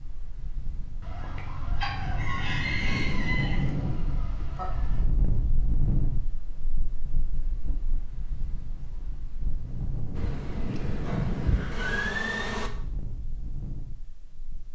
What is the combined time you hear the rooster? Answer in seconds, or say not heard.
4 s.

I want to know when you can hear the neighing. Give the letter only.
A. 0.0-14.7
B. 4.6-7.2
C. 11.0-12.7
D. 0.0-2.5
C.